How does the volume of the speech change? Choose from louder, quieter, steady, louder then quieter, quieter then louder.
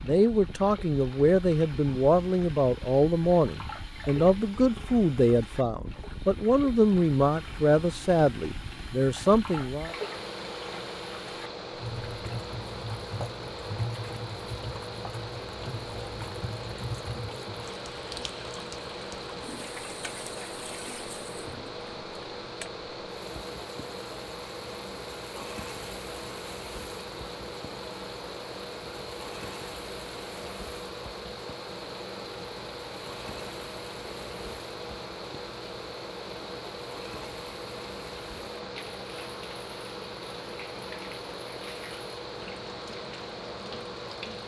steady.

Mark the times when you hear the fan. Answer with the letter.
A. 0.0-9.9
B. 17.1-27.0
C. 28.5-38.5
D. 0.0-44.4
D.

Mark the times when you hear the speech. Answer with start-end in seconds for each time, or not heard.
0.0-9.9.